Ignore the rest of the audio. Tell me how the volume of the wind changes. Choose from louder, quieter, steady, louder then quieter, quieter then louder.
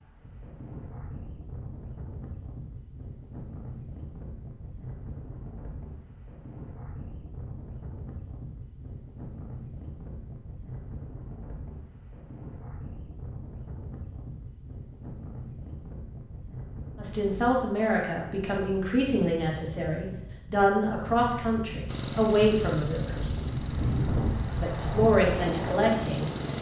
louder.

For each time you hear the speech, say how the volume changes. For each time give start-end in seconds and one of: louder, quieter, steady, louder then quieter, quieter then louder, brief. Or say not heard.
16.9-23.4 steady
24.6-26.3 brief.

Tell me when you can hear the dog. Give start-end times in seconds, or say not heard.
not heard.